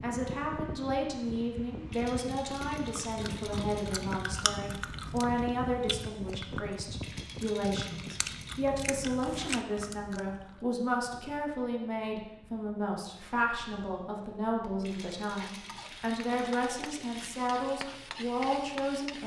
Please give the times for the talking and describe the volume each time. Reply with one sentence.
The talking can be heard from 0.0 to 19.2 s, at a steady volume.